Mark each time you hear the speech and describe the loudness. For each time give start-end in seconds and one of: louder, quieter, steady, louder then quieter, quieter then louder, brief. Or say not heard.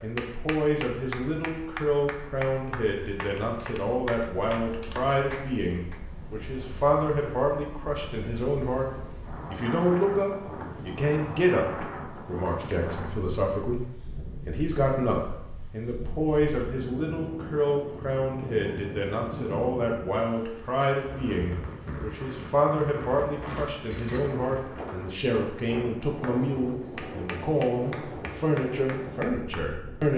0.0-30.1 steady.